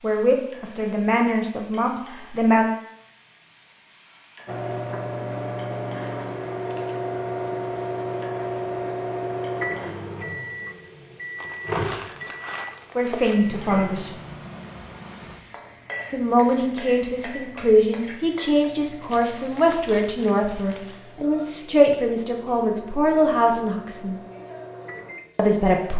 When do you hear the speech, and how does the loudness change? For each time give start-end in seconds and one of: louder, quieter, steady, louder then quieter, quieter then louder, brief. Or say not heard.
0.0-2.6 brief
12.9-14.1 brief
16.1-24.2 steady
25.4-25.9 brief.